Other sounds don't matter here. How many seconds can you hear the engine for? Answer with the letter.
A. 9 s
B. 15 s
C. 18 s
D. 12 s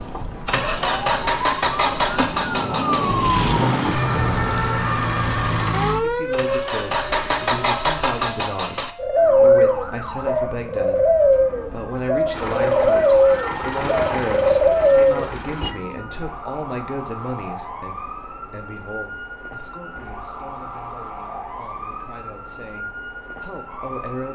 D.